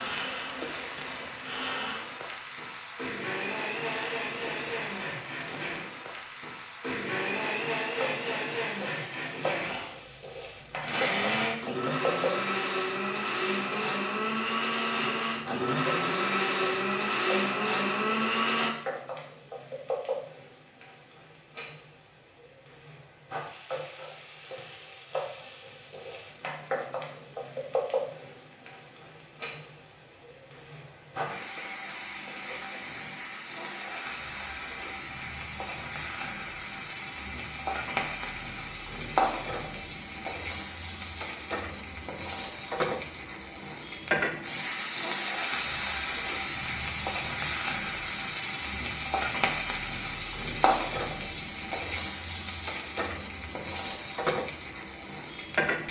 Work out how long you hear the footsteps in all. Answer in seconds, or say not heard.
not heard.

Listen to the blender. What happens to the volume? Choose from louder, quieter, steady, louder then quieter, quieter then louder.
louder.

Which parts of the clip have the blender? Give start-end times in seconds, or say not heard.
0.0-18.7.